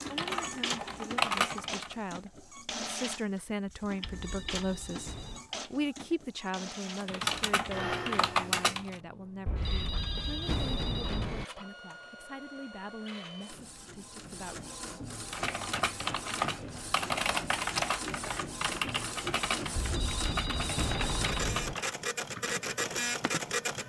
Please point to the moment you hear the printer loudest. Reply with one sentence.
The loudest moment of the printer is at 23 seconds.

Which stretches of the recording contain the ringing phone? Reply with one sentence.
You can hear the ringing phone from 4.0 to 5.4 s, from 9.4 to 11.4 s and from 19.8 to 21.8 s.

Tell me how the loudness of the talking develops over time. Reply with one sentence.
The volume of the talking goes up, then down.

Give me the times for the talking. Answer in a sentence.
The talking can be heard from 0.1 to 14.7 s.